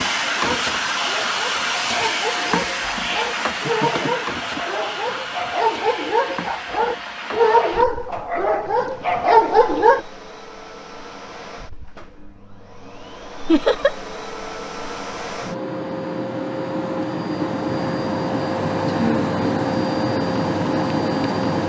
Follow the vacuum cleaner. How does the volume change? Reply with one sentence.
The volume of the vacuum cleaner goes down, then up.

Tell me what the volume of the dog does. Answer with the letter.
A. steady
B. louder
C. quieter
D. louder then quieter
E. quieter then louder
B.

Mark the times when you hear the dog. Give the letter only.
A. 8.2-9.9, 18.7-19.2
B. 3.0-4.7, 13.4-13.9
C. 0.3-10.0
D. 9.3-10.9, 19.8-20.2
C.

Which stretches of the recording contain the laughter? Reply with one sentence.
The laughter can be heard from 3.0 to 4.7 s and from 13.4 to 13.9 s.